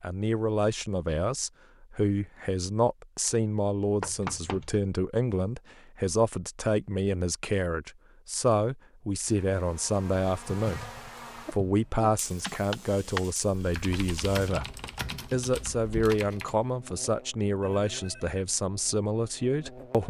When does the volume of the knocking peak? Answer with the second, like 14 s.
4 s.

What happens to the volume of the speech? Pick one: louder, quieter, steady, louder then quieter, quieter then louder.
steady.